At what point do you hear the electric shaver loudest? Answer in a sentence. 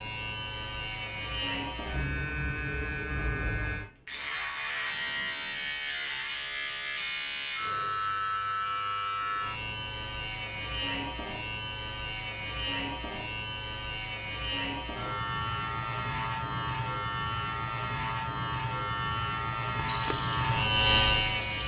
The loudest moment of the electric shaver is at 21 seconds.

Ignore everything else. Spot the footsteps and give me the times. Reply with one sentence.
The footsteps can't be heard in this clip.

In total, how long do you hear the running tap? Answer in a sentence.
You can hear the running tap for 2 seconds altogether.